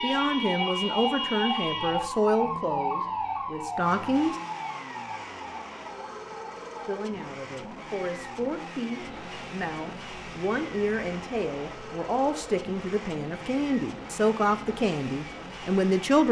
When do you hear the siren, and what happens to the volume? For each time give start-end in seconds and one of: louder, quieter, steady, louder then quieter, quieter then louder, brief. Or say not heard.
0.0-15.9 quieter.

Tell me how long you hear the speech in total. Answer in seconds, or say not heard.
14 s.